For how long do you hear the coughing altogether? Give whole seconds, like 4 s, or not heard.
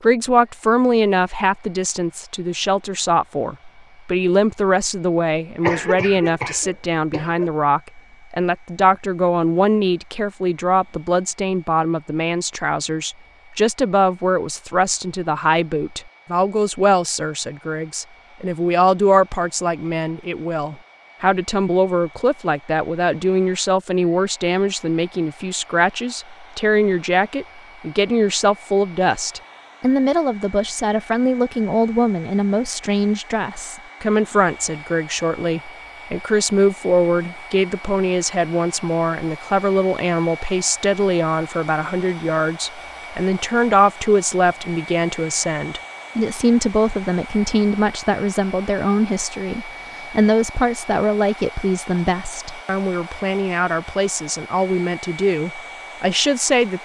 2 s.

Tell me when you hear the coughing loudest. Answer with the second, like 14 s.
6 s.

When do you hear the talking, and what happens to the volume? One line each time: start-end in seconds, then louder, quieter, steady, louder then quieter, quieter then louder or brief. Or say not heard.
0.0-56.8 steady.